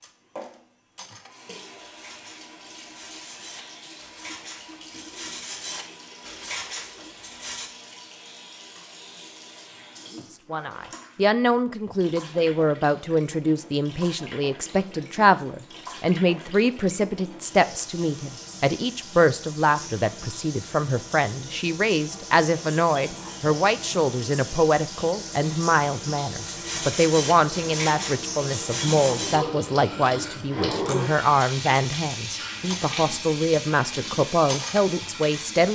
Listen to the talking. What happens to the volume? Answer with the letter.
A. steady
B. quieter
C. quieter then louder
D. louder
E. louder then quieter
A.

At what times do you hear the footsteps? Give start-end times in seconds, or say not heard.
not heard.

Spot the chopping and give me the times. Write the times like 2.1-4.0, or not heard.
not heard.